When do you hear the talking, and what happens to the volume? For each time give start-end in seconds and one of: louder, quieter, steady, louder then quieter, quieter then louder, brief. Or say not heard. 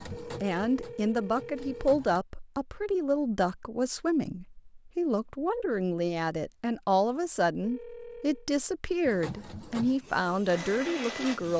0.2-11.5 steady.